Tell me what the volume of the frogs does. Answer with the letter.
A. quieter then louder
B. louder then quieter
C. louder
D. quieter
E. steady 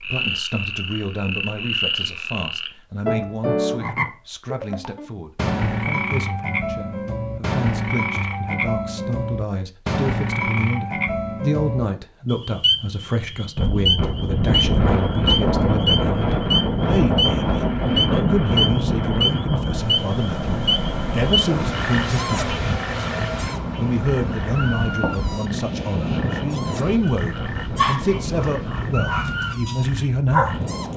D.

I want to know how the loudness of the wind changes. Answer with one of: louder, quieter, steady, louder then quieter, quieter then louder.
quieter.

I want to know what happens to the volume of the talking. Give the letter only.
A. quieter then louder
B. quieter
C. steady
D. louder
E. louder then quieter
D.